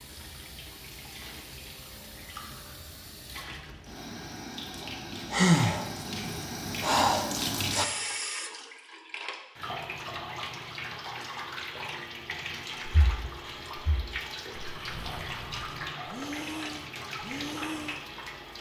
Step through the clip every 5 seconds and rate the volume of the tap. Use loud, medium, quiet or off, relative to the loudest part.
medium, loud, loud, loud.